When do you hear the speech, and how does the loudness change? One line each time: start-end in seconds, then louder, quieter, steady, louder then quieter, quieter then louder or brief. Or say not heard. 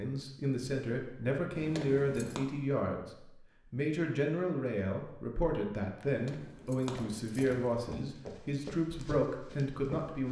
0.0-10.2 steady.